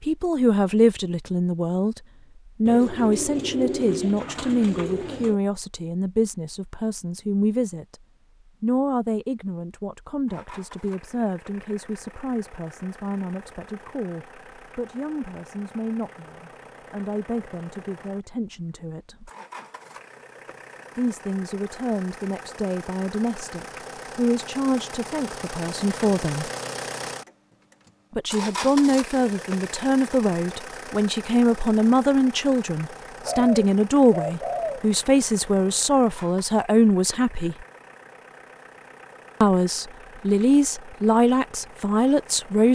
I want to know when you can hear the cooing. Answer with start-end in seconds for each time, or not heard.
2.6-5.4, 33.2-34.9.